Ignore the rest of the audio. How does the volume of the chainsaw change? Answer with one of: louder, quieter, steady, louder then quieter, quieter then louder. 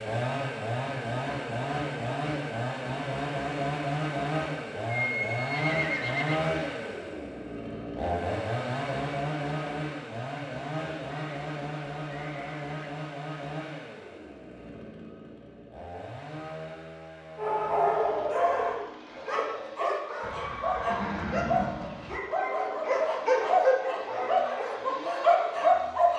quieter.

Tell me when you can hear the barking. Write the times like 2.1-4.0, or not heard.
17.4-26.1.